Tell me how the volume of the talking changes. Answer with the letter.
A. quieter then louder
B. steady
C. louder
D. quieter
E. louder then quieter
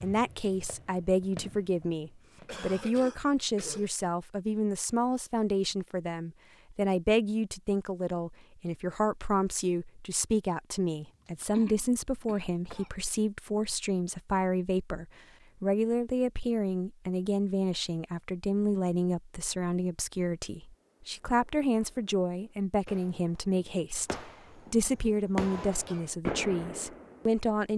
B.